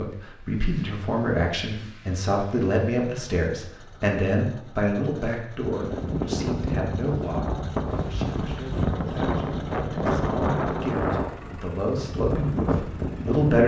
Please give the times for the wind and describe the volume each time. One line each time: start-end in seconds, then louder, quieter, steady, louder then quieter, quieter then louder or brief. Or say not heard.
5.6-13.6 steady.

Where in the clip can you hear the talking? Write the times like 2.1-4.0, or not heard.
0.0-13.6.